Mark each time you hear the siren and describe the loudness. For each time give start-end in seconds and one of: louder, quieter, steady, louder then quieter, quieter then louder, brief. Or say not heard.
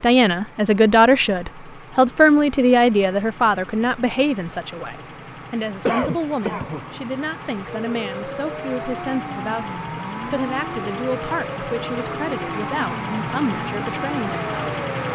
7.7-15.1 steady.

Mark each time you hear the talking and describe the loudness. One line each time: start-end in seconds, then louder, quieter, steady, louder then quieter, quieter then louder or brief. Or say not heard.
0.0-14.8 quieter.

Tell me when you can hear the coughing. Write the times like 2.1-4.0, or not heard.
5.8-6.8.